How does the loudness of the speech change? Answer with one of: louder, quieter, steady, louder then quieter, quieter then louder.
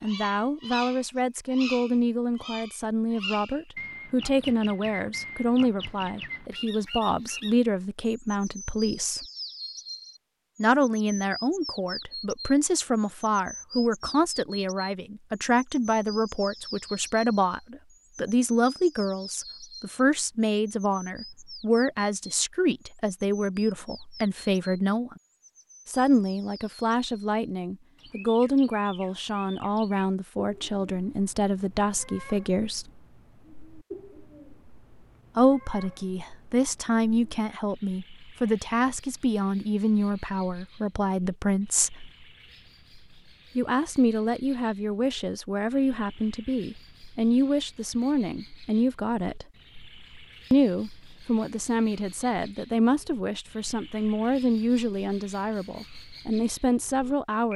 steady.